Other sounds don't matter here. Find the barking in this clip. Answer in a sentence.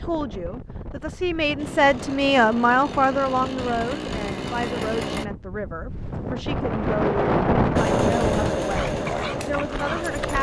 You can hear the barking from 8.7 to 10.3 s.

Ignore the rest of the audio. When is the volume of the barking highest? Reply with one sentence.
The loudest moment of the barking is at 9 seconds.